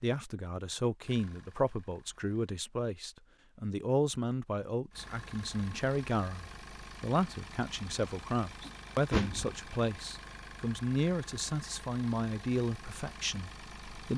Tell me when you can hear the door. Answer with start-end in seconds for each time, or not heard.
8.7-9.6.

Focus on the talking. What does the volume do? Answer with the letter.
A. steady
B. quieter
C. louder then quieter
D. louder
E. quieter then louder
A.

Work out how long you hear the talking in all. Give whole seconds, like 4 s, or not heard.
14 s.